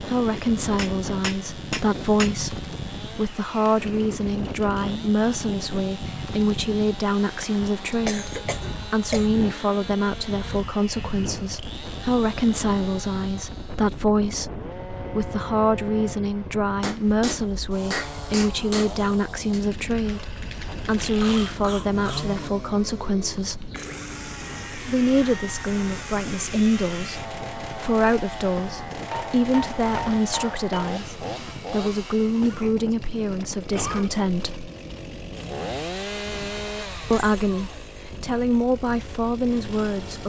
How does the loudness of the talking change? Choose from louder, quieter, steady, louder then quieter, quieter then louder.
steady.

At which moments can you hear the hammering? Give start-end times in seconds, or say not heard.
0.3-2.4, 16.8-19.6, 29.1-30.9.